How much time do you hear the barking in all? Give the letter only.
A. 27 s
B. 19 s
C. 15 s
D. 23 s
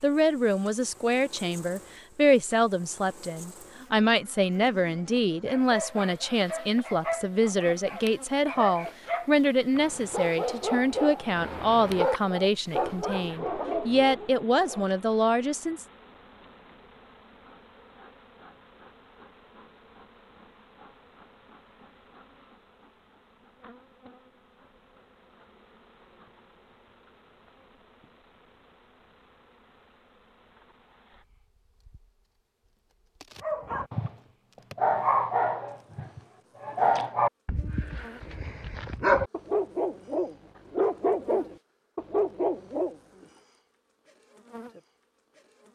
B.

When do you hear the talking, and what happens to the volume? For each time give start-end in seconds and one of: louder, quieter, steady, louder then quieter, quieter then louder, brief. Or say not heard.
0.0-15.8 steady.